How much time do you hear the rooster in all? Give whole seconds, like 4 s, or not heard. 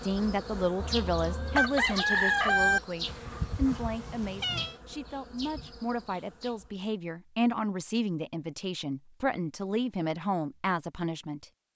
2 s.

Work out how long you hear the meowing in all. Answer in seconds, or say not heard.
2 s.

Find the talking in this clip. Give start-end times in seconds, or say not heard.
0.0-11.7.